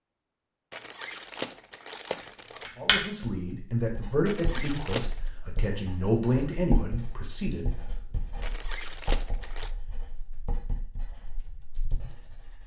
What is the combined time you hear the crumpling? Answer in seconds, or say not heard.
4 s.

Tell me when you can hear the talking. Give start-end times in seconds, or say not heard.
2.8-7.7.